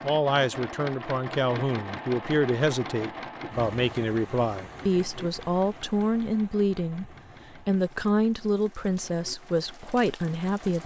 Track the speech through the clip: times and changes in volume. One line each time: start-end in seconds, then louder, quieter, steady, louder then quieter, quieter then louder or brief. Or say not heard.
0.0-10.8 steady.